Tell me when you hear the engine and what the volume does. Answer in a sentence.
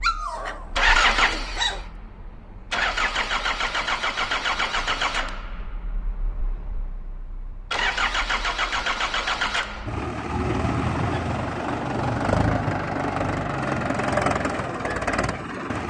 The engine can be heard from 0.0 to 15.8 s, at a steady volume.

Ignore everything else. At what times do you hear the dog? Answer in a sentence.
The dog can be heard from 0.0 to 1.9 s.